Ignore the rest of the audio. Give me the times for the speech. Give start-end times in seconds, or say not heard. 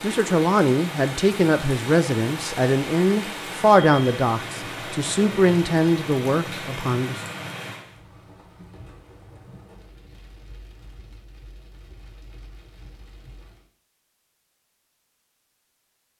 0.0-7.2.